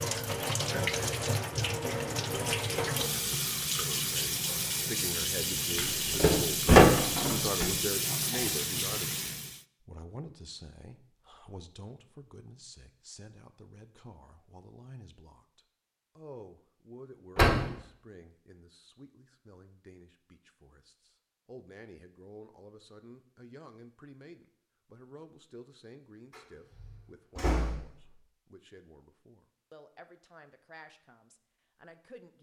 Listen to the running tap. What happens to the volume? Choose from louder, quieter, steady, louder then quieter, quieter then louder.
steady.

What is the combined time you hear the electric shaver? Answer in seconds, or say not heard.
not heard.